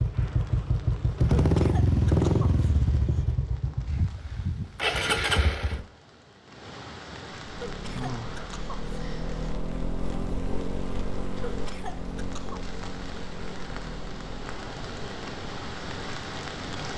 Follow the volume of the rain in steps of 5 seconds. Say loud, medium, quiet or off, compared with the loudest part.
quiet, medium, medium, loud.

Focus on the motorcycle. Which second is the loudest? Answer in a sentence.
The loudest moment of the motorcycle is at 2 seconds.